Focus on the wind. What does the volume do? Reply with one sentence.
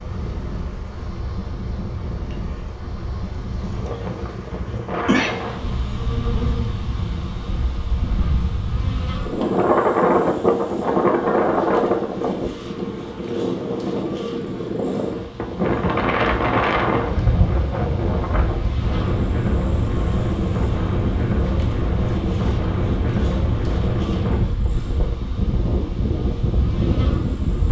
The volume of the wind goes up.